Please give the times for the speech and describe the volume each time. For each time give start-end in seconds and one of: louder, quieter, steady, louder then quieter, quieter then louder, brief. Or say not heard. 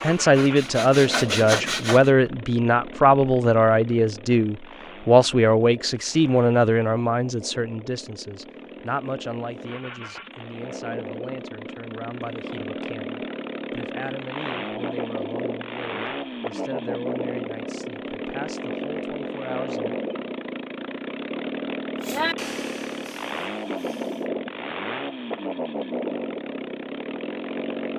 0.0-20.0 quieter.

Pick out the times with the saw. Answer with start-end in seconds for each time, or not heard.
0.0-2.1, 22.0-24.3.